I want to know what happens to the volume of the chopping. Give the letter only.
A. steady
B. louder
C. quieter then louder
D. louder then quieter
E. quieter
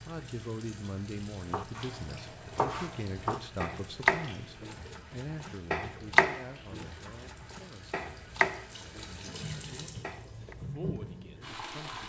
D.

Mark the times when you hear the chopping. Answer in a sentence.
The chopping can be heard from 1.5 to 10.6 s.